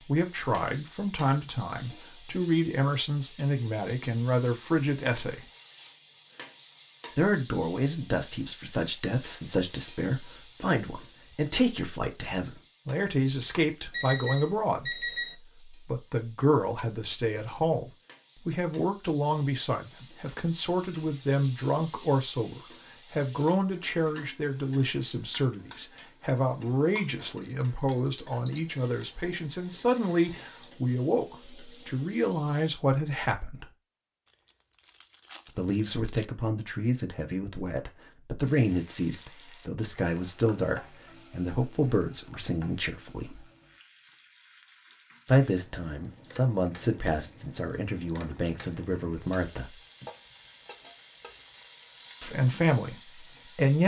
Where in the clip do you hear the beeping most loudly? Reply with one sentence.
The volume of the beeping peaks at 29 seconds.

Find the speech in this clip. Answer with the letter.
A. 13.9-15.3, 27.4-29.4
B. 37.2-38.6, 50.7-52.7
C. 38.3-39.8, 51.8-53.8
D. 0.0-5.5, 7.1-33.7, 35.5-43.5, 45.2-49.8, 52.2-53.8
D.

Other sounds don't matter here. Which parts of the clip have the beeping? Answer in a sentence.
The beeping can be heard from 13.9 to 15.3 s and from 27.4 to 29.4 s.